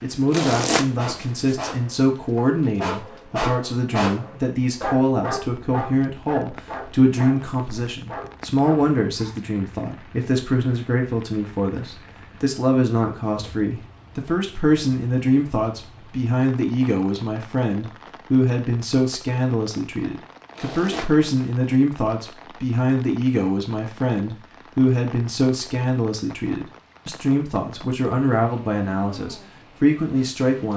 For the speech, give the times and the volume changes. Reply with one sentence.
You can hear the speech from 0.0 to 30.7 s, at a steady volume.